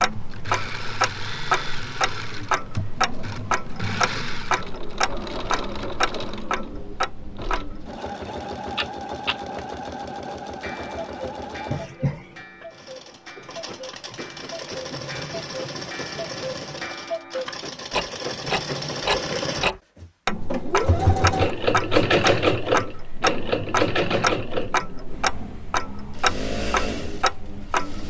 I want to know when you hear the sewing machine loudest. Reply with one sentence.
The loudest moment of the sewing machine is at 22 seconds.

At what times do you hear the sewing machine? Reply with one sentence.
The sewing machine can be heard from 0.0 to 28.0 s.